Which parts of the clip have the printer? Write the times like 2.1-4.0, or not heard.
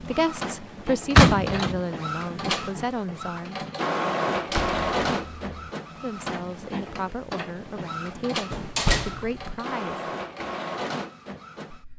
0.0-11.9.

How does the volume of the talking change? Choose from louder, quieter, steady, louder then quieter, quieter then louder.
quieter.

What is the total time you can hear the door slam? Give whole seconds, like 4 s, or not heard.
3 s.